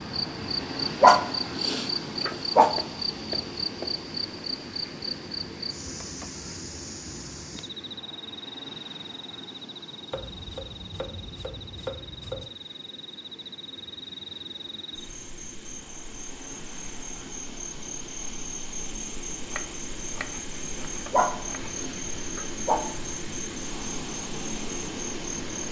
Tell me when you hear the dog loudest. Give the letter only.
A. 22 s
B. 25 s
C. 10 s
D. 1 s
D.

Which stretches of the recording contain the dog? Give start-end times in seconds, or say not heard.
1.0-2.8, 21.1-22.9.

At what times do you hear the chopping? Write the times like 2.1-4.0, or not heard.
2.3-4.0, 10.1-12.5, 19.4-21.8.